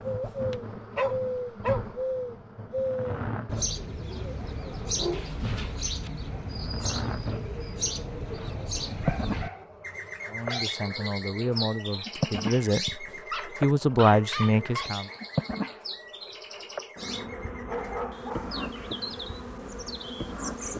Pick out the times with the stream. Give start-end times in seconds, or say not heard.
not heard.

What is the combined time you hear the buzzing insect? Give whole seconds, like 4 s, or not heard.
21 s.